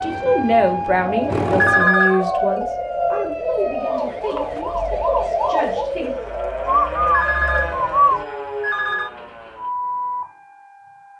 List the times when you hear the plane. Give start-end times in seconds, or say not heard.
0.0-1.9.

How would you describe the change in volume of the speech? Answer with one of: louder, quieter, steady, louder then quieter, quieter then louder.
quieter.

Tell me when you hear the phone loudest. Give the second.
2 s.